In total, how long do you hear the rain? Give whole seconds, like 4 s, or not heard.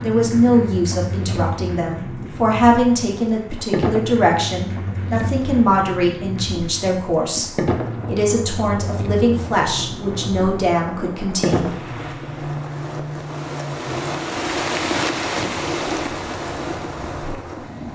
18 s.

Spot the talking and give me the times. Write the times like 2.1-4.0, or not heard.
0.0-11.7.